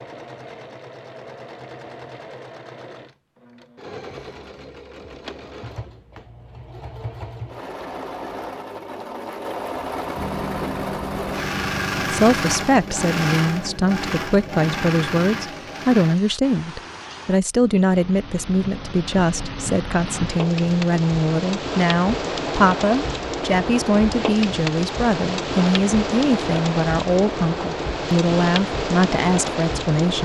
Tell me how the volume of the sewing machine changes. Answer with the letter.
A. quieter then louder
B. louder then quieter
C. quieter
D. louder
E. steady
D.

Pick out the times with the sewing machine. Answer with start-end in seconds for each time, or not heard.
0.0-16.2.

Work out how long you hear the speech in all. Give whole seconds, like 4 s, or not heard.
18 s.